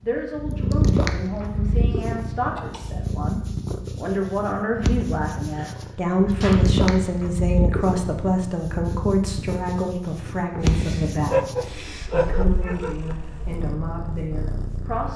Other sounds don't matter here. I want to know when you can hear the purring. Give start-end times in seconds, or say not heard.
0.1-15.1.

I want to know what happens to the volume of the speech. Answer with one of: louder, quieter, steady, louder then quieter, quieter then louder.
louder then quieter.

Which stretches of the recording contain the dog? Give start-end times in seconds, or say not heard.
11.2-13.2.